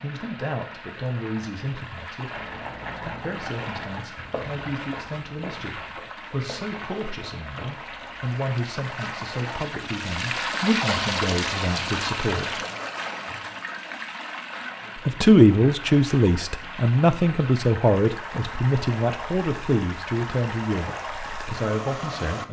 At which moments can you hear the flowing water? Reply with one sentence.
The flowing water can be heard from 0.0 to 22.4 s.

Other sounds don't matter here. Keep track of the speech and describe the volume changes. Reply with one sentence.
The loudness of the speech goes up, then down.